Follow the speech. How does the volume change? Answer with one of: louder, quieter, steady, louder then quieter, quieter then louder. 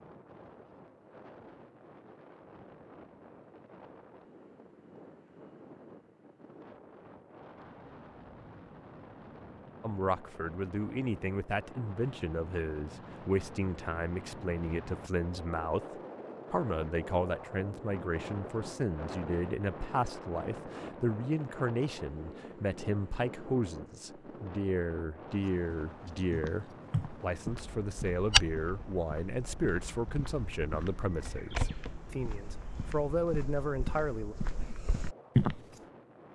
steady.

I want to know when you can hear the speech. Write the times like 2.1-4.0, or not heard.
9.8-15.8, 16.5-34.4.